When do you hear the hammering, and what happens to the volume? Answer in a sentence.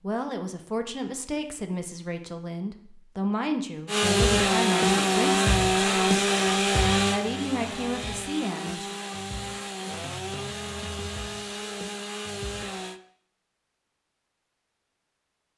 The hammering can't be heard in this clip.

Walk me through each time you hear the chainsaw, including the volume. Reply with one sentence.
The chainsaw can be heard from 3.9 to 13.0 s, getting quieter.